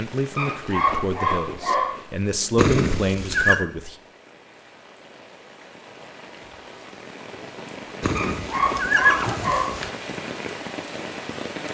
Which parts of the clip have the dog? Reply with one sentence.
The dog can be heard from 0.3 to 2.0 s and from 8.2 to 9.8 s.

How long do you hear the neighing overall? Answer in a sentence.
You can hear the neighing for 3 seconds altogether.